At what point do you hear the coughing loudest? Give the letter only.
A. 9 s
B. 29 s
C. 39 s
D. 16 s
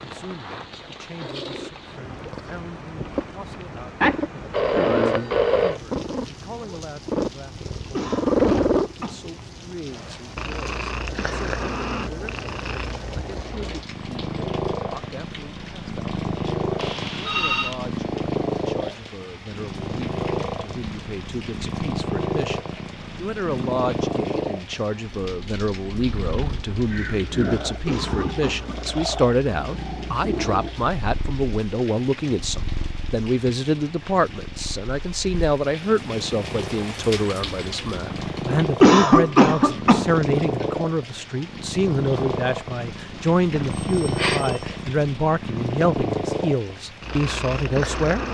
C.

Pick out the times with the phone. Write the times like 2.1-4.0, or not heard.
4.0-5.8, 16.8-17.8, 43.5-44.8.